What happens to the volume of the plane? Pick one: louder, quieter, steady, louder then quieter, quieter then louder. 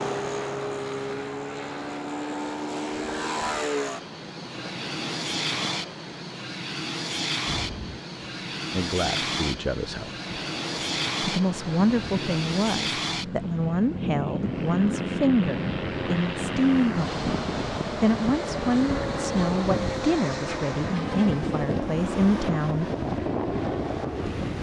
steady.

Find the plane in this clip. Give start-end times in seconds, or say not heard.
0.0-24.5.